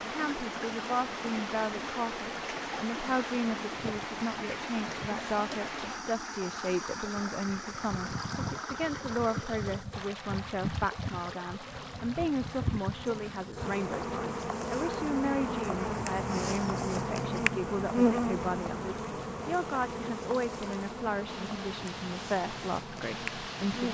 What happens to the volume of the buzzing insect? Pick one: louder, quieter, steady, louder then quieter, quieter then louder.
louder then quieter.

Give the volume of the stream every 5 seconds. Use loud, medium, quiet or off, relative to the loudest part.
loud, loud, medium, quiet, medium.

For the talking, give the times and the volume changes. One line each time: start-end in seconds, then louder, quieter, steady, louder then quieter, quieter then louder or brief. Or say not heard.
0.1-23.8 steady.